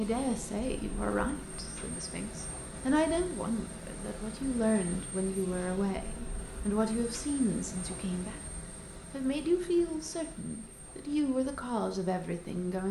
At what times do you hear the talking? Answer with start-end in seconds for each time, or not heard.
0.0-8.4, 9.1-12.8.